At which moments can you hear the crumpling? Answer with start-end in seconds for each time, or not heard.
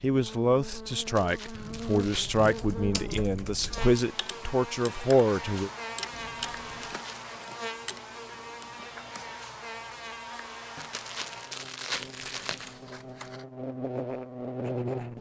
0.9-2.8, 6.7-7.3, 10.8-12.8.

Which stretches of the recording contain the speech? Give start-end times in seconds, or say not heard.
0.0-5.7.